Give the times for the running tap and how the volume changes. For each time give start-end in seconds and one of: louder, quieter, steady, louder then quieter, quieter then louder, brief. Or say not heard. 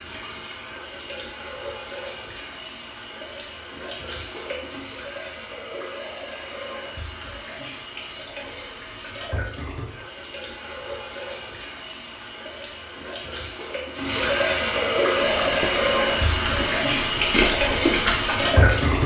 0.0-19.0 louder.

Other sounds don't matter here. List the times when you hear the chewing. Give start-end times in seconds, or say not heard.
15.2-19.0.